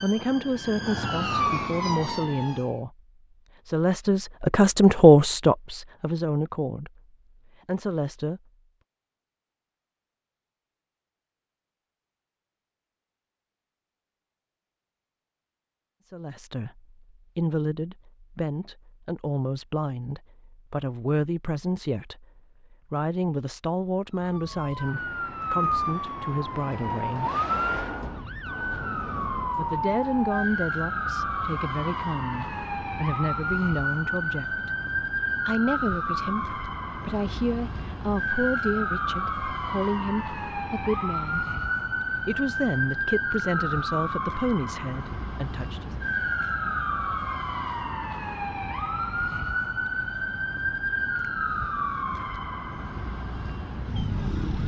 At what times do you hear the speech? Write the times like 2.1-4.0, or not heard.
0.0-3.0, 3.6-8.4, 16.1-27.3, 29.6-34.7, 35.5-41.5, 42.2-46.0.